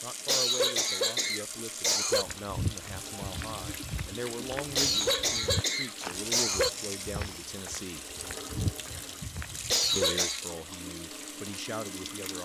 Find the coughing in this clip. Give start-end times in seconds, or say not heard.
0.2-2.2, 4.8-6.7, 9.7-10.4.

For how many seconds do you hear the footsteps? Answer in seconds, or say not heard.
8 s.